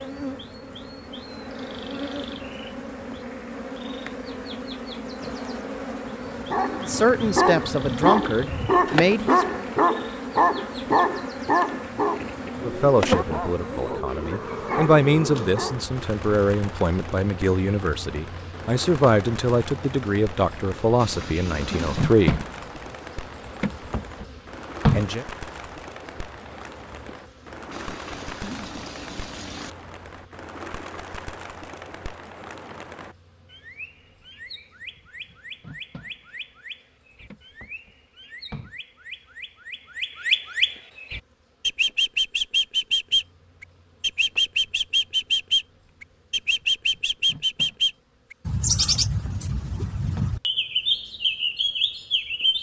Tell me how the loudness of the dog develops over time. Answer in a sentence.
The loudness of the dog goes down.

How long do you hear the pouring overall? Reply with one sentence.
The pouring can be heard for 3 seconds in total.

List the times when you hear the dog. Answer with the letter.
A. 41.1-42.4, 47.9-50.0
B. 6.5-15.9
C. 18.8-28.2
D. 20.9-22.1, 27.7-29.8
B.